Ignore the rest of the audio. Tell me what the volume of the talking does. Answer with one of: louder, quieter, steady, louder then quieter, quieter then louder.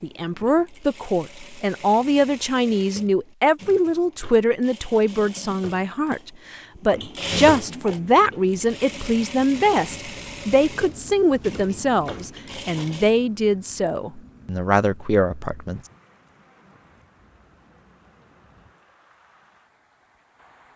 steady.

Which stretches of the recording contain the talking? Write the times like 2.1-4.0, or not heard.
0.0-15.8.